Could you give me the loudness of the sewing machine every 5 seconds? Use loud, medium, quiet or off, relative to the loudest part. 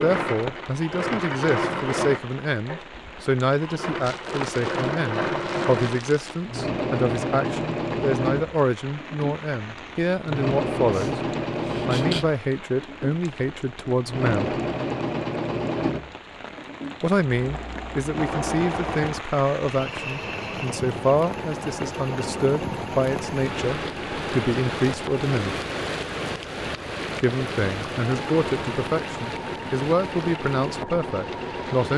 loud, loud, loud, loud, medium, medium, medium.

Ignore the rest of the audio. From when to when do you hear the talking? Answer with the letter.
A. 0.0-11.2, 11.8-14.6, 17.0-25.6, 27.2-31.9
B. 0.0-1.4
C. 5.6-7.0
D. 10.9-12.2
A.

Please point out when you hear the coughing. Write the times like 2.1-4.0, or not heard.
10.9-12.2.